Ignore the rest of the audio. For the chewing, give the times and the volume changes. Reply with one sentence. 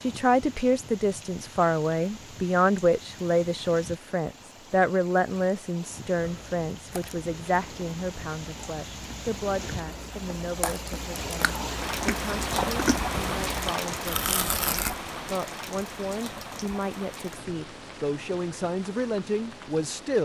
The chewing can be heard from 6.2 to 14.9 s, getting louder.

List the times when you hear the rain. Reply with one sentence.
You can hear the rain from 0.0 to 20.1 s.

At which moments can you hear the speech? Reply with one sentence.
The speech can be heard from 0.0 to 20.1 s.